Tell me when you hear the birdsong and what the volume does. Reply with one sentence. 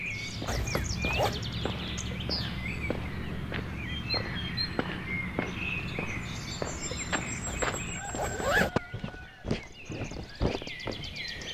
You can hear the birdsong from 0.0 to 11.5 s, getting quieter.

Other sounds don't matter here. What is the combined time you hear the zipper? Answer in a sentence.
The zipper can be heard for 2 seconds in total.